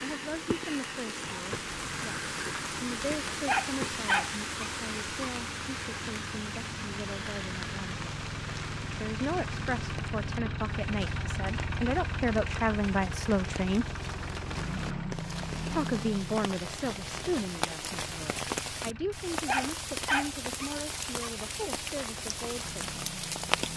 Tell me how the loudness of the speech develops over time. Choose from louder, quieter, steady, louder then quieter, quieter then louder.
louder then quieter.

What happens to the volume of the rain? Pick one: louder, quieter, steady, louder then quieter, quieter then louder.
quieter then louder.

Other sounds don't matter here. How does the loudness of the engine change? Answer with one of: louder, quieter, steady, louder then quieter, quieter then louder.
louder then quieter.